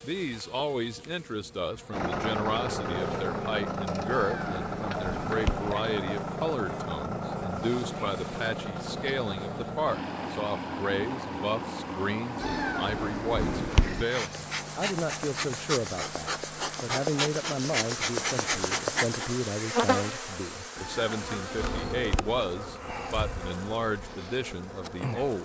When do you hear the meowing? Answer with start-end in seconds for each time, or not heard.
4.1-5.7, 12.4-14.1, 20.8-22.4.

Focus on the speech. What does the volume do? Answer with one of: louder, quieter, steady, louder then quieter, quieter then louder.
steady.